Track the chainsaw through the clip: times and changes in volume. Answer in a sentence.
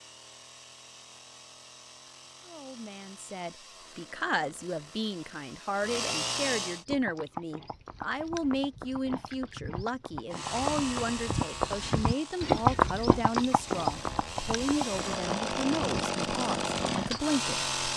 You can hear the chainsaw from 0.0 to 6.8 s, getting louder; and from 10.3 to 17.9 s, getting quieter then louder.